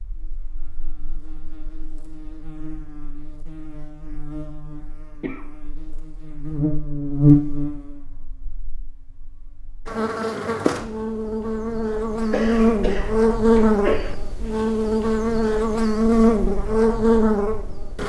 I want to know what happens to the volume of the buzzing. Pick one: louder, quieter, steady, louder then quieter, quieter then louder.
louder.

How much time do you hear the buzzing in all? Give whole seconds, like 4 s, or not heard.
18 s.